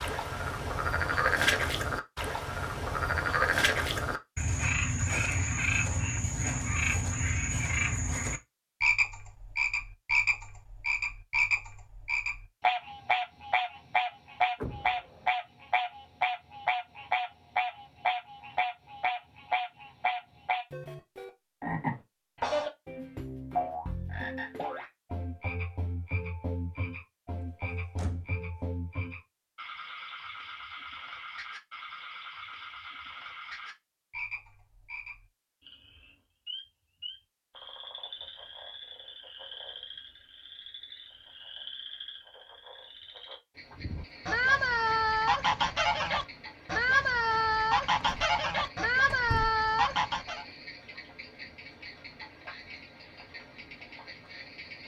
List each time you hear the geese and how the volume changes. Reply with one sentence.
You can hear the geese from 43.8 to 50.5 s, at a steady volume.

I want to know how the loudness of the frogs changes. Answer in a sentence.
The volume of the frogs goes down.